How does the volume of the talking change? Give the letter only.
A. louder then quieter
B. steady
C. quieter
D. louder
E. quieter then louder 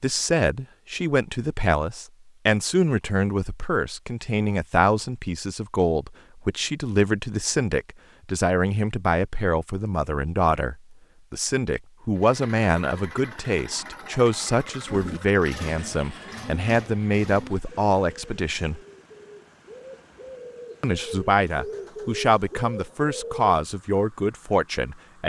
B.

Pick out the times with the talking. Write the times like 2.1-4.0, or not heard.
0.0-18.8, 20.8-25.2.